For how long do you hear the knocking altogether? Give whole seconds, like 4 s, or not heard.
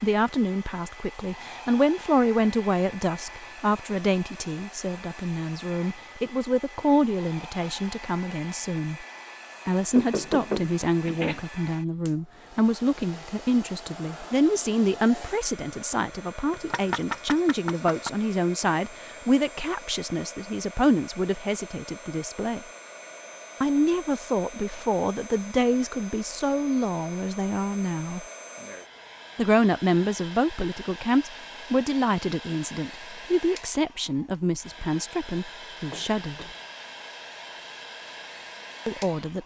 4 s.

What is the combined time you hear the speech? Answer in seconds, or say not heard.
34 s.